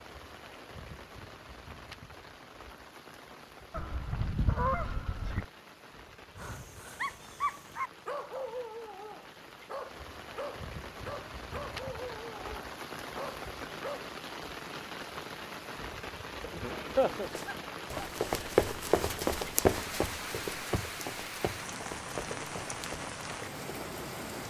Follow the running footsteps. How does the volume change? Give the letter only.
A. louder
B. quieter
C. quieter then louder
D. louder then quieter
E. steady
B.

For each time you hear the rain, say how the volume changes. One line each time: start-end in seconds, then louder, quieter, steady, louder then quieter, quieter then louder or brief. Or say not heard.
0.0-24.4 louder.